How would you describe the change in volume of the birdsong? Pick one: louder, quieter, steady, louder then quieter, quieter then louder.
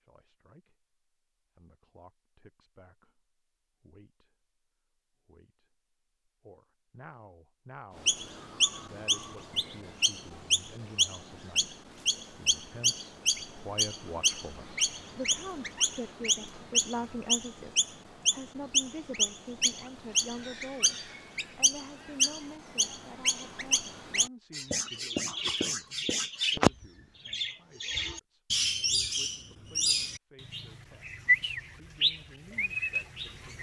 steady.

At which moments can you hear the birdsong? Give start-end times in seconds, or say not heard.
8.0-33.5.